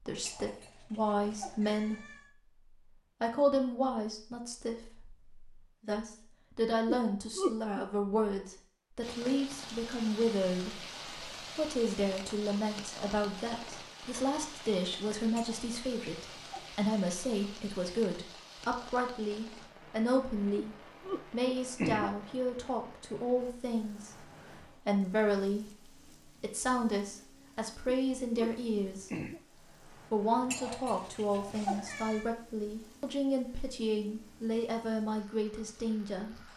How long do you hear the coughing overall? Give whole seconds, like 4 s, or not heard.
4 s.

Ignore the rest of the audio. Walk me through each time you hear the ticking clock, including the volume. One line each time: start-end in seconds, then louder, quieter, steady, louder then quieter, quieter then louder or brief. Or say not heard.
not heard.